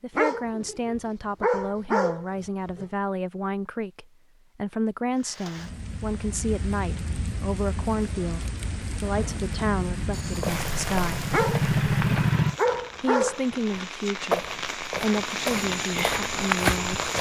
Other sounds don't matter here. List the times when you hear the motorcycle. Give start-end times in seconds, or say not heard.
9.1-12.6.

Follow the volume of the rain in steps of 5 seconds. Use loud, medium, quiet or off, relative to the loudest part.
off, medium, medium, loud.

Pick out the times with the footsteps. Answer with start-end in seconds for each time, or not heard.
10.1-17.1.